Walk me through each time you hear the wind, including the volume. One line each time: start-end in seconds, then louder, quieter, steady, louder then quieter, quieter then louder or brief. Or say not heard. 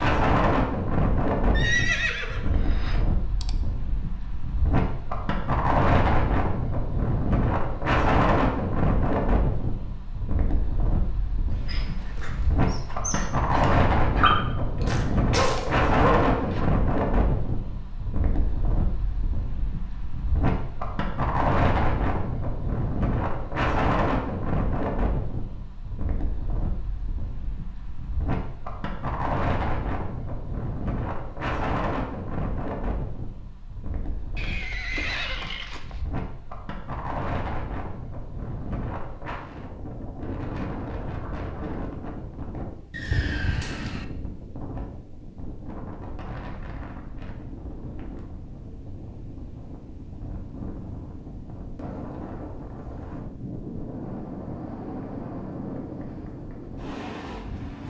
0.0-57.8 quieter.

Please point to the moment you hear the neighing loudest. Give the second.
2 s.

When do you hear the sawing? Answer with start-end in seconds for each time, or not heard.
not heard.